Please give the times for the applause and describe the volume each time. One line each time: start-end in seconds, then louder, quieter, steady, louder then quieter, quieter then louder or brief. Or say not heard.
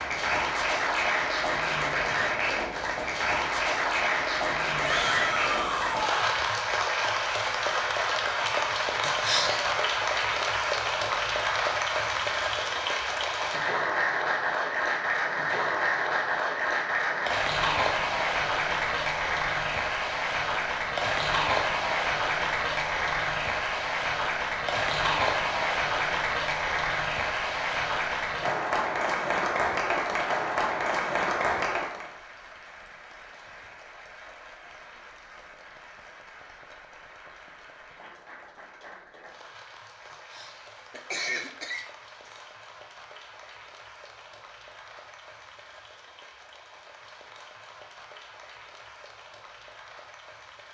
0.0-50.6 quieter.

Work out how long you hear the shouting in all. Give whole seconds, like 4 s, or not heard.
2 s.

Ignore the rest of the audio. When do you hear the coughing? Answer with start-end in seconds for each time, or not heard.
9.0-9.8, 40.1-42.4.